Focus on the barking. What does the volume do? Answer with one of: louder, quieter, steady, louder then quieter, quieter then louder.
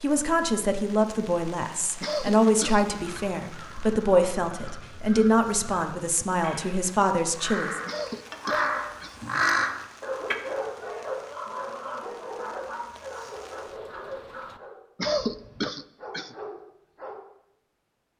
quieter.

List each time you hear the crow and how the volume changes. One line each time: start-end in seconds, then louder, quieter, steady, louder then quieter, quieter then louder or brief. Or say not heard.
3.0-10.3 louder.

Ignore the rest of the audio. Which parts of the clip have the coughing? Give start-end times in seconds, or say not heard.
2.0-3.2, 7.8-9.2, 14.9-16.4.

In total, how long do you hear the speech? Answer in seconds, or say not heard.
8 s.